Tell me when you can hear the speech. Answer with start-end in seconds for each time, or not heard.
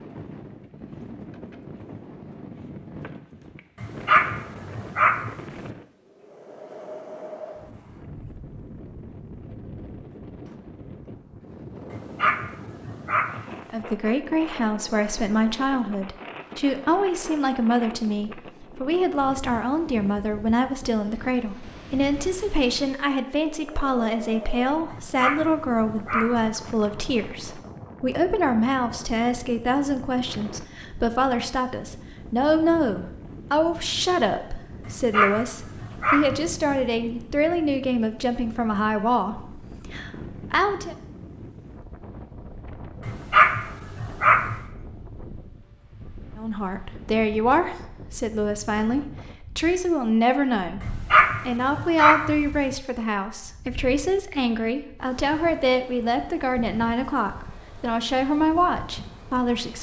13.7-41.0, 46.4-50.8, 51.5-59.7.